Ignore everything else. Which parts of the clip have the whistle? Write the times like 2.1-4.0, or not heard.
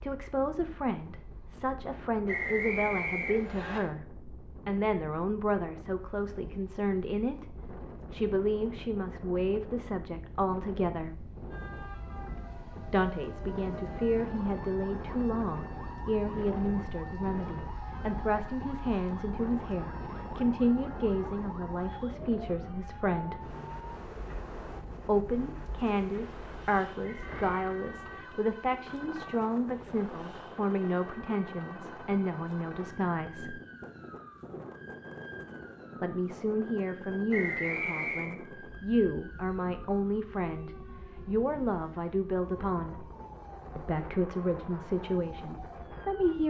2.2-3.8, 27.0-27.4, 37.3-38.4.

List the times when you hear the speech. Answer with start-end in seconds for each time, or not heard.
0.0-11.3, 12.9-23.4, 25.1-33.6, 36.0-43.1, 43.8-46.4.